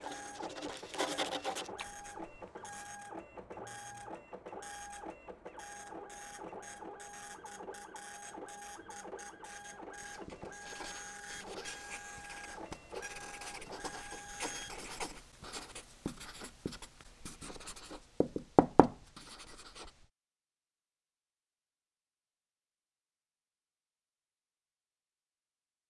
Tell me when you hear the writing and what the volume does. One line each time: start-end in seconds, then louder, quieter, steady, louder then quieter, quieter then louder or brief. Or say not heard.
0.0-2.9 brief
10.0-20.1 louder.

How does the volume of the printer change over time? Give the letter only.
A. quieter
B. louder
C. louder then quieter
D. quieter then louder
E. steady
E.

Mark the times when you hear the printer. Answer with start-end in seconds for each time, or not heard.
0.0-14.8.